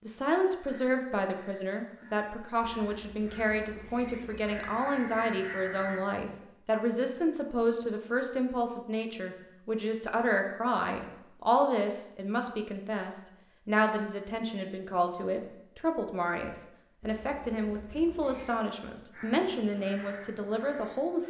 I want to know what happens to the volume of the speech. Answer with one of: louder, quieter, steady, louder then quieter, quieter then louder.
steady.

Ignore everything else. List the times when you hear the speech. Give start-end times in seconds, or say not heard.
0.0-21.2.